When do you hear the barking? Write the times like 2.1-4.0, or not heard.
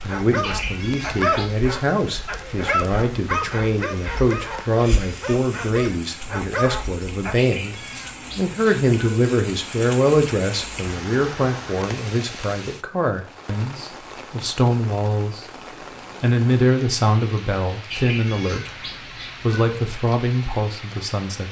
0.0-7.4.